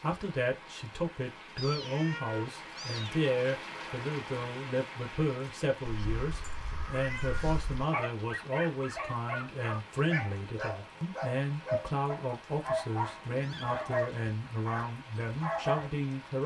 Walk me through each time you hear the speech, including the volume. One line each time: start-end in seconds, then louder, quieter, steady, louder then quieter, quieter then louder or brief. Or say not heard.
0.0-16.4 steady.